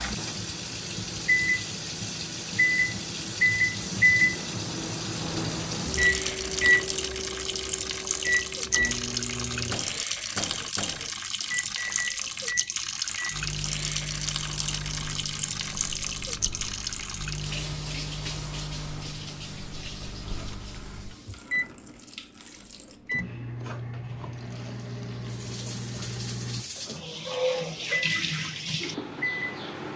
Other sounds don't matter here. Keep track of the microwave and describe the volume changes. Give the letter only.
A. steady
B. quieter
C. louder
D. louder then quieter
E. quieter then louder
B.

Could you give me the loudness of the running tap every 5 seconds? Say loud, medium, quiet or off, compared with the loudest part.
loud, loud, loud, loud, quiet, loud.